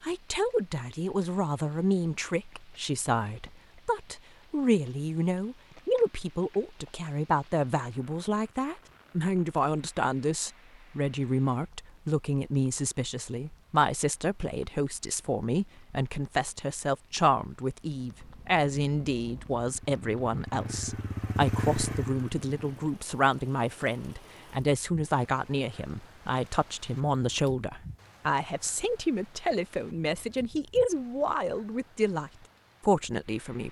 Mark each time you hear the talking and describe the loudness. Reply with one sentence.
You can hear the talking from 0.0 to 33.6 s, at a steady volume.